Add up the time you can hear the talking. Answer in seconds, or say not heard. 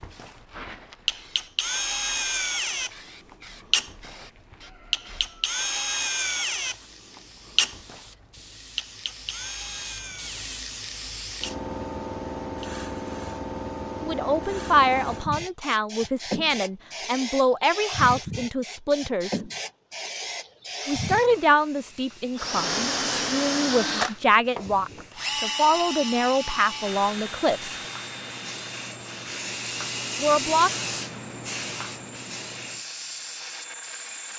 13 s.